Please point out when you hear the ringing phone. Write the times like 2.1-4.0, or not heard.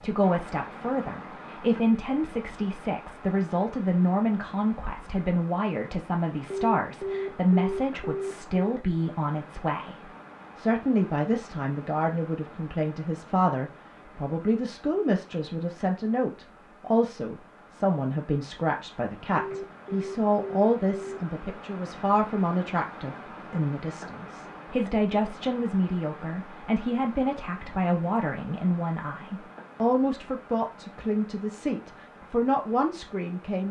6.5-8.8, 19.4-21.2.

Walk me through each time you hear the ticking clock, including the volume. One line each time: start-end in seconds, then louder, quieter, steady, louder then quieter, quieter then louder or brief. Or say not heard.
not heard.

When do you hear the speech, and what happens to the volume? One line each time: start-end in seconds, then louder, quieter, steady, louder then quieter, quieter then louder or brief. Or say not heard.
0.0-33.6 steady.